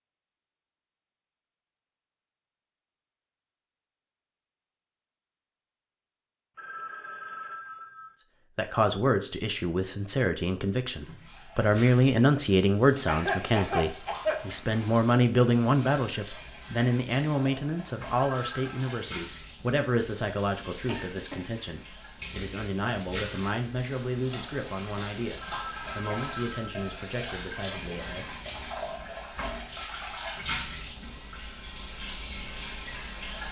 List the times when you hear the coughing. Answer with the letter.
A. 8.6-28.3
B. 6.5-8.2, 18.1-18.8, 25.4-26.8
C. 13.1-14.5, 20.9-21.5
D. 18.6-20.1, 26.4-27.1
C.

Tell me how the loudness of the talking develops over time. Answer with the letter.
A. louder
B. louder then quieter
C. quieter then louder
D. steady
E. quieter
E.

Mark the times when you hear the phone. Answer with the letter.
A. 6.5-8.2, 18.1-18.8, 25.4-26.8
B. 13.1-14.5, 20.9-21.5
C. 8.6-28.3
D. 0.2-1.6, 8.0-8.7
A.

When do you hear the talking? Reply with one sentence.
You can hear the talking from 8.6 to 28.3 s.